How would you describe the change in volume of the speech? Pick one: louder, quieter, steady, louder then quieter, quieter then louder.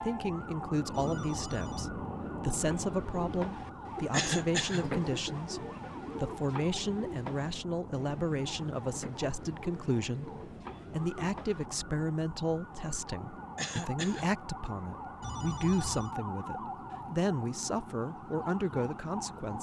steady.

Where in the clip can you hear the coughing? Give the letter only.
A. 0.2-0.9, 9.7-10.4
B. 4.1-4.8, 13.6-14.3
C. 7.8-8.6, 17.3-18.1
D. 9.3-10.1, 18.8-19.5
B.